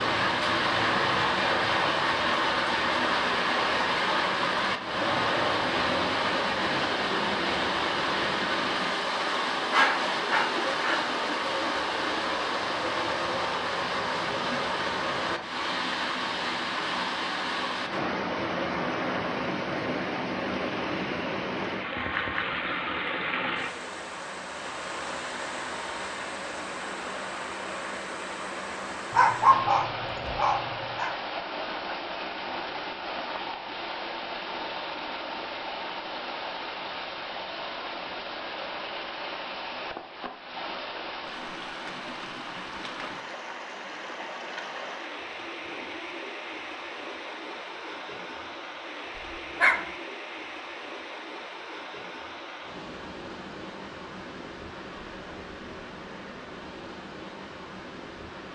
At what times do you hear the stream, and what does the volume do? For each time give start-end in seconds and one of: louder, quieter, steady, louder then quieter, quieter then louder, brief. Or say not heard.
0.0-58.4 quieter.